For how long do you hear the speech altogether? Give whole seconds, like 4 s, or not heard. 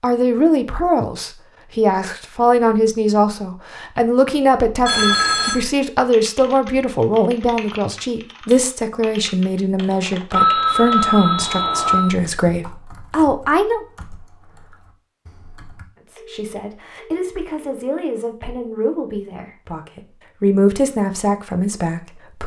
20 s.